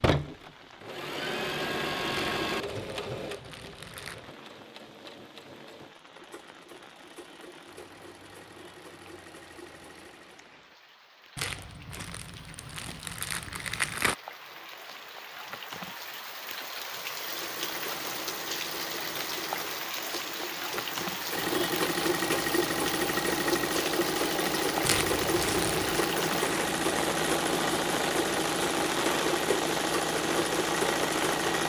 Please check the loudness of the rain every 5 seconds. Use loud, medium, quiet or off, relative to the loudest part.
quiet, quiet, quiet, loud, loud, loud, loud.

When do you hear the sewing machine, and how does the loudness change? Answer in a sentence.
You can hear the sewing machine from 0.0 to 10.6 s, getting quieter; and from 17.1 to 31.6 s, getting louder.